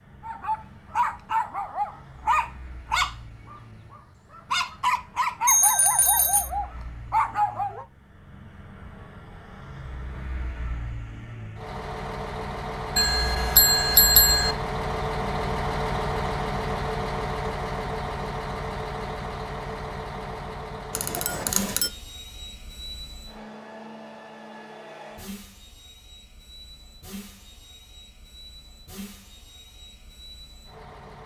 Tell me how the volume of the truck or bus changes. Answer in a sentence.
The volume of the truck or bus goes up, then down.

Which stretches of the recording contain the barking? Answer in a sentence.
You can hear the barking from 0.2 to 7.8 s.